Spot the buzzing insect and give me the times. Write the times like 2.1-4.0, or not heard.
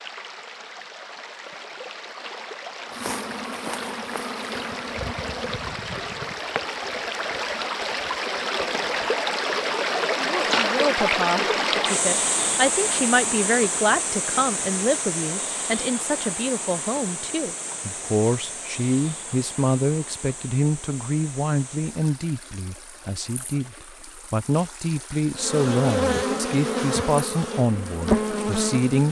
2.9-5.8, 25.4-29.0.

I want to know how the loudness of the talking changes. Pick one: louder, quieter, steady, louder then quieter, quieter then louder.
steady.